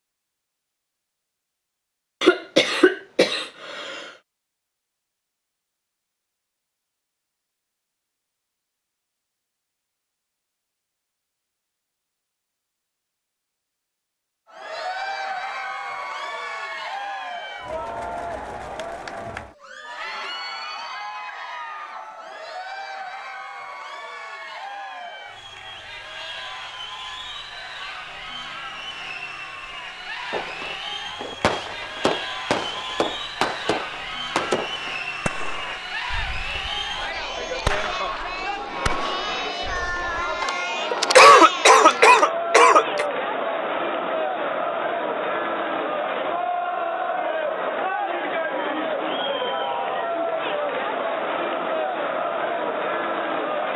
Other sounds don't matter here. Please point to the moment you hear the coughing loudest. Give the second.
41 s.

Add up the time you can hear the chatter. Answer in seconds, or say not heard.
39 s.